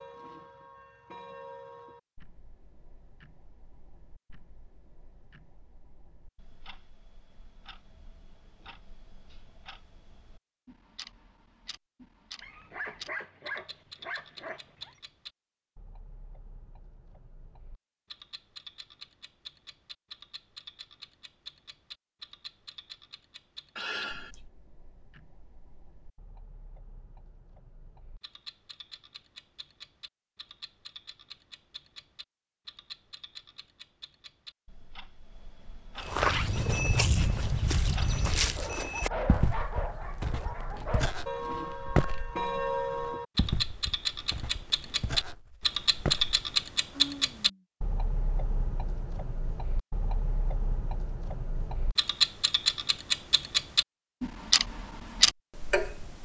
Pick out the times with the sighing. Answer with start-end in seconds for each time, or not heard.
23.8-24.4, 46.9-47.6.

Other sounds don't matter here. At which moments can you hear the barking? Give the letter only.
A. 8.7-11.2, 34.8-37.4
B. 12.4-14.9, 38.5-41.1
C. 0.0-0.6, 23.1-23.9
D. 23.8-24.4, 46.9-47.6
B.